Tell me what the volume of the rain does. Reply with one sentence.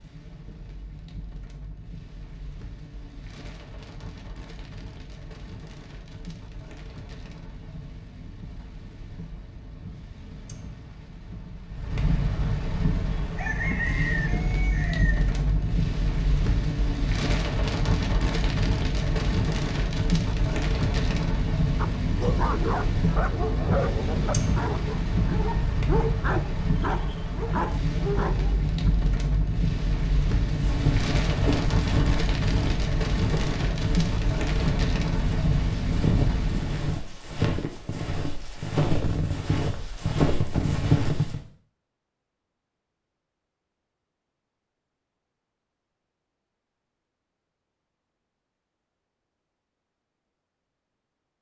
The volume of the rain goes up.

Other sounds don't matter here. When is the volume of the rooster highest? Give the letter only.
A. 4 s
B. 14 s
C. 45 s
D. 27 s
B.